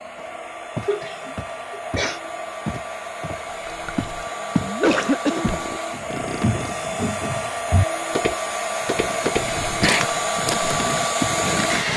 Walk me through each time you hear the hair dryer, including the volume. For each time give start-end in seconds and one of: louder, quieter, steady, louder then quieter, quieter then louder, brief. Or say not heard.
0.0-11.9 louder.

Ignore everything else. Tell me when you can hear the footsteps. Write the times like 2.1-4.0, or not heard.
0.1-4.8, 5.4-11.4.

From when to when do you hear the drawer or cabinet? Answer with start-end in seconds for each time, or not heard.
not heard.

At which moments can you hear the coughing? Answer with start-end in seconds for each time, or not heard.
0.8-2.2, 4.7-5.6, 9.6-10.1.